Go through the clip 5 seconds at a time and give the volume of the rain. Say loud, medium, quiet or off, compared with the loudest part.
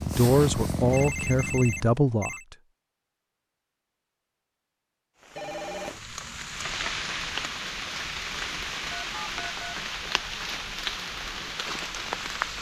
off, loud, loud.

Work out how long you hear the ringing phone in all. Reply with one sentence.
You can hear the ringing phone for 3 seconds altogether.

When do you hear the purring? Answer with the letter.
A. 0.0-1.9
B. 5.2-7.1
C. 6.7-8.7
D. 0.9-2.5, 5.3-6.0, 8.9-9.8
A.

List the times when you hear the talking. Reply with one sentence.
The talking can be heard from 0.1 to 2.5 s.